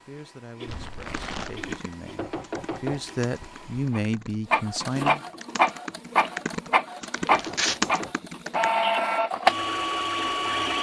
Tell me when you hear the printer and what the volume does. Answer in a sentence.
You can hear the printer from 0.0 to 10.7 s, getting louder.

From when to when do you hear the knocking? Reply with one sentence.
You can hear the knocking from 2.1 to 3.0 s and from 7.3 to 8.2 s.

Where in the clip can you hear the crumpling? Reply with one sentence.
The crumpling can be heard from 0.7 to 1.7 s and from 7.2 to 7.8 s.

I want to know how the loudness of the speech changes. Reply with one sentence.
The loudness of the speech goes up.